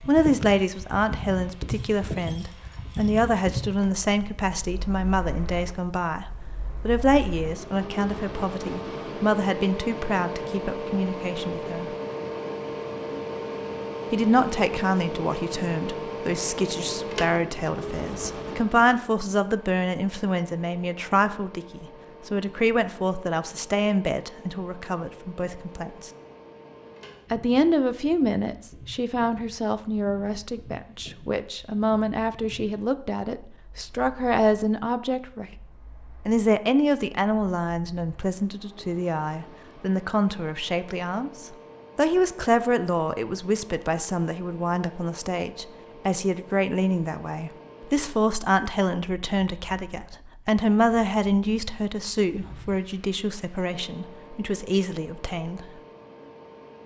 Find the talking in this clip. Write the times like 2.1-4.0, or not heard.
0.0-11.9, 14.1-26.1, 27.3-35.5, 36.2-55.6.